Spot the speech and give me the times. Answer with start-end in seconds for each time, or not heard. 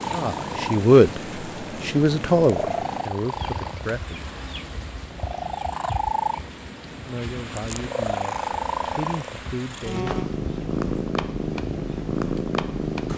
0.1-1.2, 1.8-4.2, 7.0-10.1.